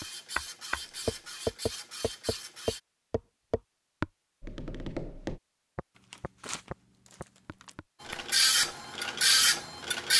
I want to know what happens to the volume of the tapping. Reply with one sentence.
The volume of the tapping goes down.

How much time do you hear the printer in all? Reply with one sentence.
You can hear the printer for 5 seconds altogether.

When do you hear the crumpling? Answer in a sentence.
You can hear the crumpling from 0.8 to 1.4 s and from 6.0 to 7.8 s.